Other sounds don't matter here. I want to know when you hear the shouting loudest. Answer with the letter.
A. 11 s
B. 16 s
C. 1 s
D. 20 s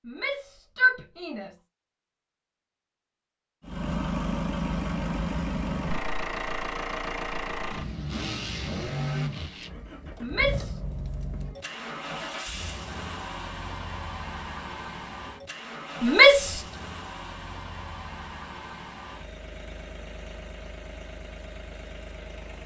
B.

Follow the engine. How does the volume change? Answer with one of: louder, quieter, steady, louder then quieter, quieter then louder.
quieter.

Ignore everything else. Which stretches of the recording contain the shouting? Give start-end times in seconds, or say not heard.
0.1-1.5, 10.2-10.8, 16.0-16.6.